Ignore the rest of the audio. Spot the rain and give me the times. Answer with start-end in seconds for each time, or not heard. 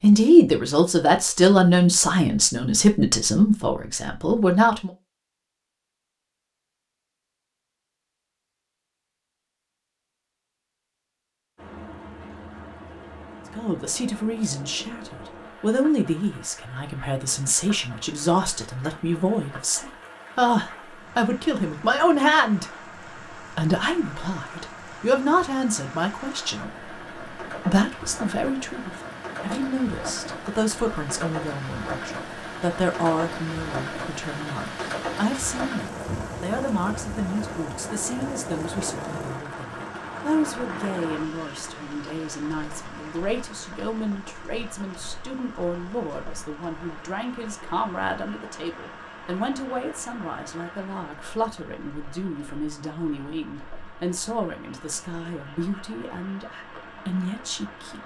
11.6-58.0.